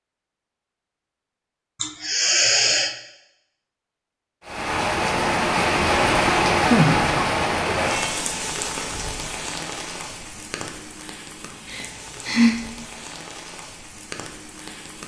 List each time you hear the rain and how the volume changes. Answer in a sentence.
The rain can be heard from 4.4 to 15.0 s, getting quieter.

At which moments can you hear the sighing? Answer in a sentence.
You can hear the sighing from 1.8 to 3.0 s, from 6.6 to 7.2 s and from 11.7 to 12.6 s.